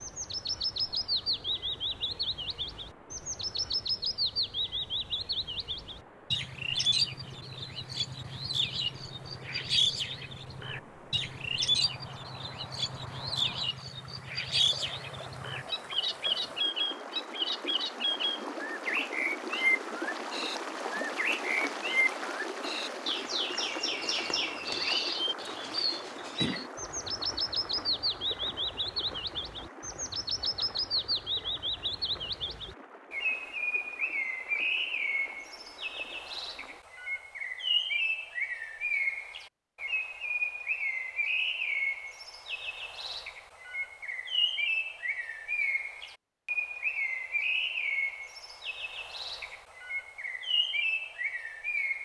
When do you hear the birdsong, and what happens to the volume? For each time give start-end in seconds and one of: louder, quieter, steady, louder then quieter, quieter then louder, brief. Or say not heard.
0.0-51.9 steady.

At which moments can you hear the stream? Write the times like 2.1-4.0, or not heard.
0.0-36.8.